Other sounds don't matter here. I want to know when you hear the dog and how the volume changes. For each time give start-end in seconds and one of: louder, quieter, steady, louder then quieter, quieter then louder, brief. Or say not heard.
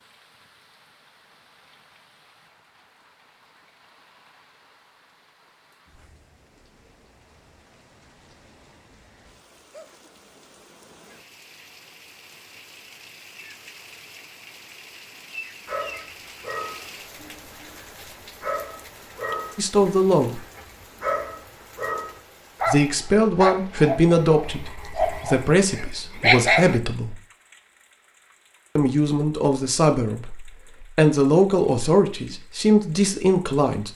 15.7-26.8 louder.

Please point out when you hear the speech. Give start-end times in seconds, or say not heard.
19.6-20.4, 22.6-27.2, 28.8-33.9.